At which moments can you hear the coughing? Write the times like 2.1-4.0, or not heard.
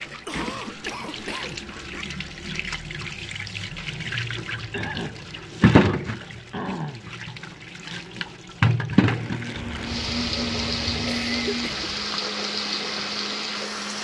0.1-2.0, 4.7-7.1, 9.5-12.2.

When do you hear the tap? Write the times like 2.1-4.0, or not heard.
0.0-13.9.